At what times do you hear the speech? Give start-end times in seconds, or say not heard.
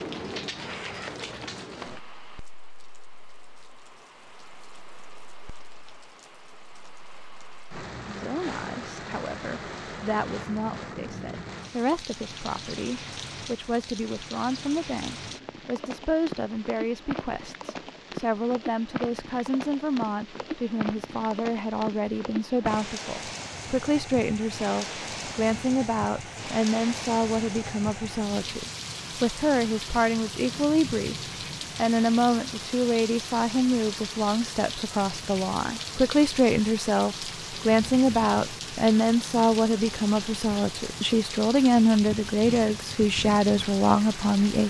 8.1-31.1, 31.8-44.6.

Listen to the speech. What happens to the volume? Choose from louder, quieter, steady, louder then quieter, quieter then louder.
louder.